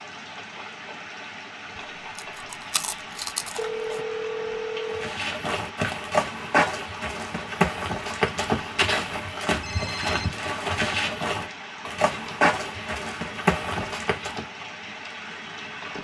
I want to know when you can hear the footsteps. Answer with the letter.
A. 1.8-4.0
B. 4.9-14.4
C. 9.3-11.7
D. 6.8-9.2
B.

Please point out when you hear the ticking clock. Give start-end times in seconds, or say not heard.
not heard.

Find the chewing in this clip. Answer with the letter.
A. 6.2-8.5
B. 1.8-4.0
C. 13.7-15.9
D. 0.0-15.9
B.